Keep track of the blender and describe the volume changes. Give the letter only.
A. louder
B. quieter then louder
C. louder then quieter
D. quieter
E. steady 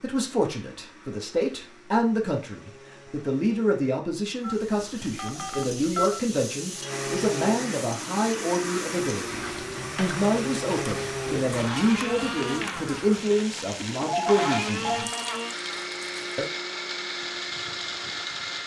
A.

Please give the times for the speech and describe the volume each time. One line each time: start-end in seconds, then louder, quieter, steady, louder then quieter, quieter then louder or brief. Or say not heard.
0.0-15.1 steady.